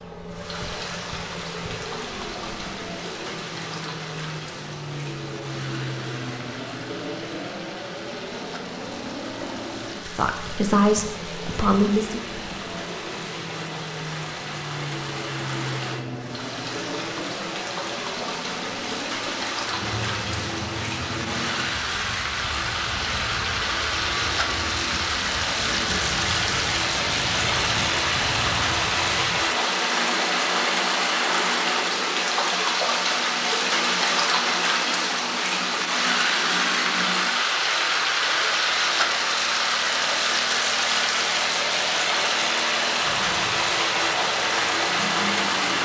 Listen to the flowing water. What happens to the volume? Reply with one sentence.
The loudness of the flowing water goes up.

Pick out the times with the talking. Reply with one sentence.
You can hear the talking from 9.9 to 12.2 s.